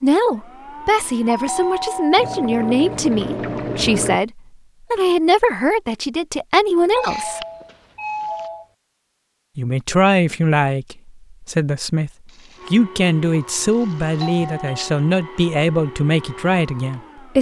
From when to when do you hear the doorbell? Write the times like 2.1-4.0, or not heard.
1.2-3.0, 6.9-8.7, 14.2-14.9.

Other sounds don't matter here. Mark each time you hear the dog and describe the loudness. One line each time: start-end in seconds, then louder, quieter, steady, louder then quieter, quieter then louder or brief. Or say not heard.
not heard.